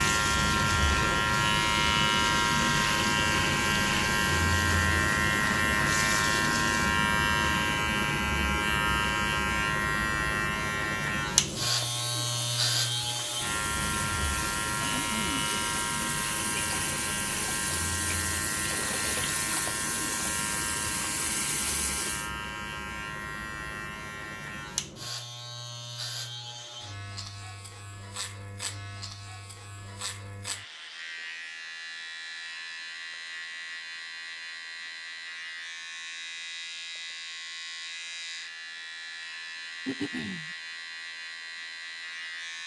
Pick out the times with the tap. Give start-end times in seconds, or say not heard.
0.0-7.0, 11.4-22.3.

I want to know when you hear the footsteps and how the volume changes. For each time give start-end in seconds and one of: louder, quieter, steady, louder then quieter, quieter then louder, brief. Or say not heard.
not heard.